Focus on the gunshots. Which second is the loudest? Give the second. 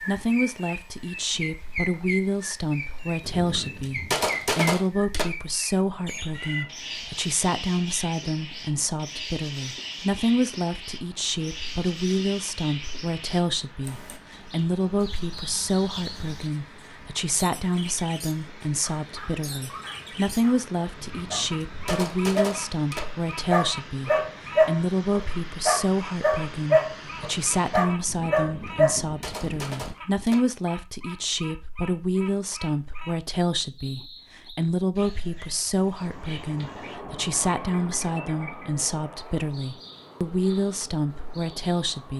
4 s.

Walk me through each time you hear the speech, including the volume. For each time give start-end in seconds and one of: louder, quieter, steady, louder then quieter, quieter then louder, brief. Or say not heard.
0.0-42.1 steady.